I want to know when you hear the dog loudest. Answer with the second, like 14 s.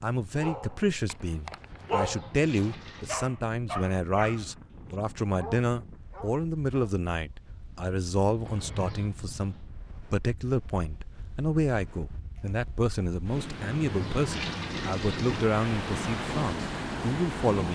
2 s.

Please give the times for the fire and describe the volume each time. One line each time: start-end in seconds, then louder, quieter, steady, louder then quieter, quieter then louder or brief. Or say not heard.
not heard.